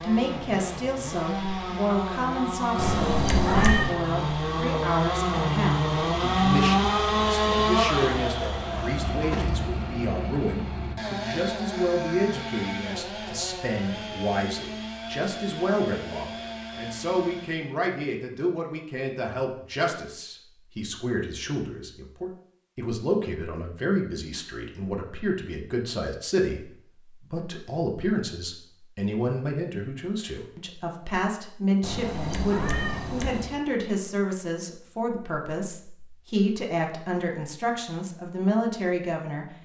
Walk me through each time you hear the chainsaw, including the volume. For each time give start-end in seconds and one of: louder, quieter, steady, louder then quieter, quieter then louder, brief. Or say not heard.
0.0-17.8 louder then quieter.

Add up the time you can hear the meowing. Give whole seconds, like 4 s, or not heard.
3 s.